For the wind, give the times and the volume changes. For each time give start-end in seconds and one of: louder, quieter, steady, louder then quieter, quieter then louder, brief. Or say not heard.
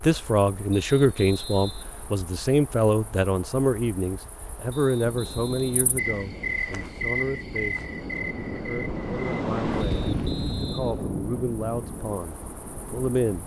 5.0-13.4 louder then quieter.